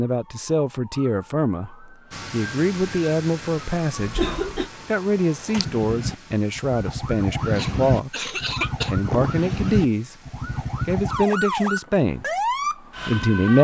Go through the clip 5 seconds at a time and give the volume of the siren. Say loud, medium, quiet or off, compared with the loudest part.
quiet, loud, loud.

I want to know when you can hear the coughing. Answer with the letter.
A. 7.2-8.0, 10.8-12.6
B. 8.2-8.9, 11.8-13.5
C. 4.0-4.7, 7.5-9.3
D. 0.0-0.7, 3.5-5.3
C.